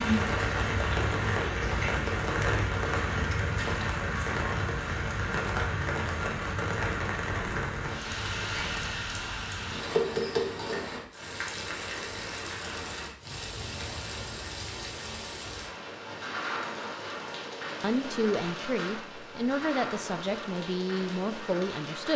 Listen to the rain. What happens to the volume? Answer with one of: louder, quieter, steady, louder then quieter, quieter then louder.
quieter.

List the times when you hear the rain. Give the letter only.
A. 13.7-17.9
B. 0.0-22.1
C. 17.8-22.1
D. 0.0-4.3
B.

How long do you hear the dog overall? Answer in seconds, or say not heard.
not heard.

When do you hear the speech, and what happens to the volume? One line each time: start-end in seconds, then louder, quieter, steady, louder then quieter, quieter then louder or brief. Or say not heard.
17.8-22.1 steady.